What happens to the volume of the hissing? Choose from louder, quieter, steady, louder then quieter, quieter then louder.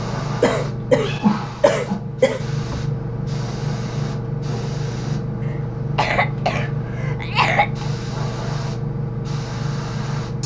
steady.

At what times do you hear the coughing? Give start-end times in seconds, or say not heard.
0.4-2.8, 5.5-7.8.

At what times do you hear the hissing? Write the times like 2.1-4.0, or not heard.
0.0-10.4.